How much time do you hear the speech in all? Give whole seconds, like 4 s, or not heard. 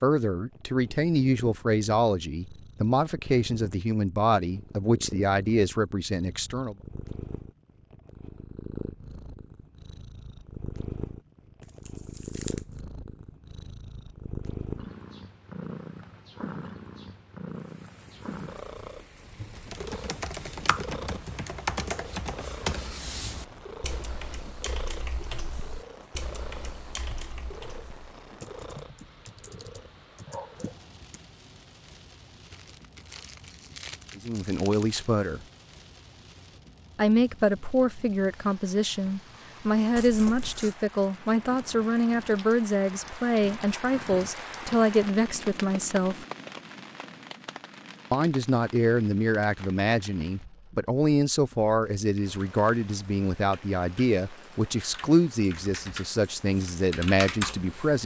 27 s.